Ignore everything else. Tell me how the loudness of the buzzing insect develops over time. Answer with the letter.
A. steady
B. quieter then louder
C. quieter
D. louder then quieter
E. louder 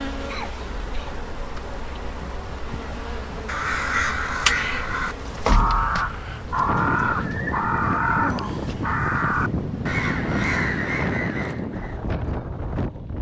D.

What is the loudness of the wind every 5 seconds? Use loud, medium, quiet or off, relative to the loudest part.
off, loud, loud.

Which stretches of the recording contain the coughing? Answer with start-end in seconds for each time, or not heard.
0.2-1.6.